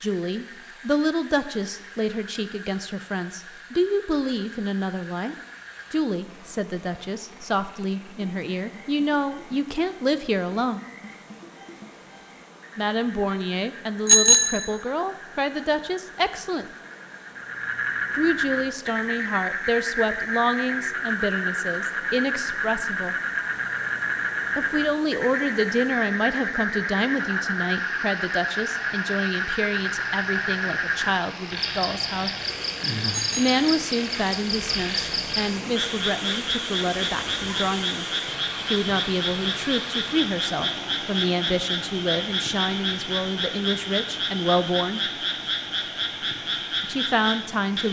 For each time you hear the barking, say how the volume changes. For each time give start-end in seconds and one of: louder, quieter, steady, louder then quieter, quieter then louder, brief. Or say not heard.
not heard.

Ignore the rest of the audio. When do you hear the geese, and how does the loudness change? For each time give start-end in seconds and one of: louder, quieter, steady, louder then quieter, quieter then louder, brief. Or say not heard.
not heard.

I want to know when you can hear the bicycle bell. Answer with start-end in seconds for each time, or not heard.
14.1-14.7, 33.1-33.6.